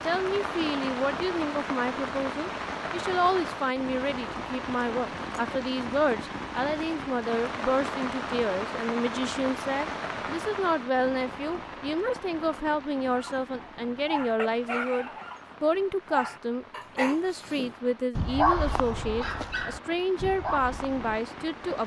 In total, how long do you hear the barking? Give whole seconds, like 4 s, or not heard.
8 s.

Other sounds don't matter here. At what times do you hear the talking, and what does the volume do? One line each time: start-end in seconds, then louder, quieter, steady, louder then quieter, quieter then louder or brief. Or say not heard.
0.1-21.8 steady.